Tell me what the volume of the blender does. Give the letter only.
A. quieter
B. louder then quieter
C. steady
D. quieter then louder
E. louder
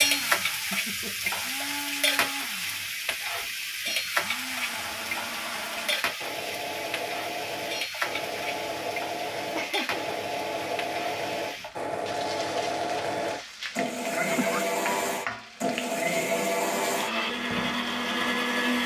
E.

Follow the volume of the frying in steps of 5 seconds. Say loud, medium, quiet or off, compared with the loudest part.
loud, medium, medium, medium.